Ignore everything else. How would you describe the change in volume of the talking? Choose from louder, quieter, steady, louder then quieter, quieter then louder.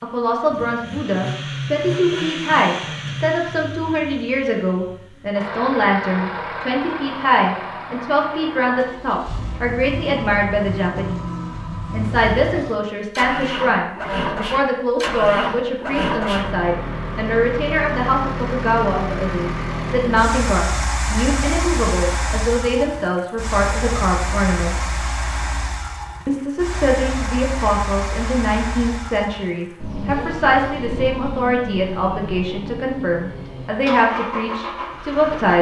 steady.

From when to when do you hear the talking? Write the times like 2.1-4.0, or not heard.
0.0-24.9, 26.2-35.5.